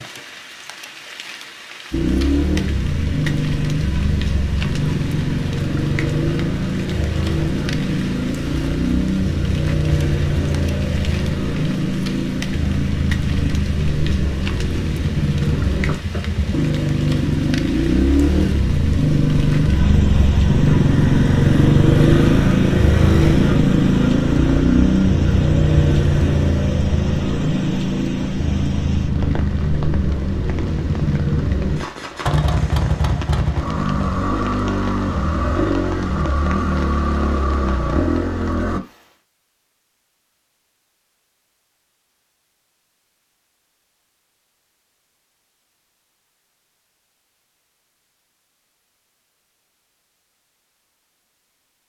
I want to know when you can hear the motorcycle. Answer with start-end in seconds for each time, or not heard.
1.9-38.8.